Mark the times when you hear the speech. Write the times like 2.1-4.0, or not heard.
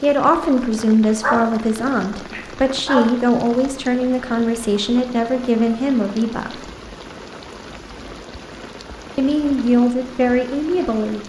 0.0-6.6, 9.2-11.2.